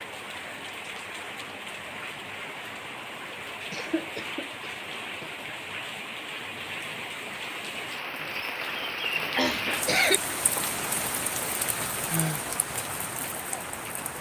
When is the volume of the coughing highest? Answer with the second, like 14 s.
10 s.